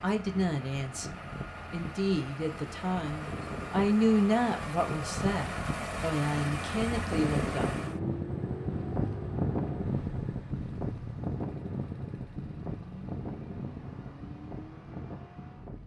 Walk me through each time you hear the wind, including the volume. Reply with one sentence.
You can hear the wind from 0.1 to 15.8 s, getting louder then quieter.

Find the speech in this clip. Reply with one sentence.
The speech can be heard from 0.0 to 7.8 s.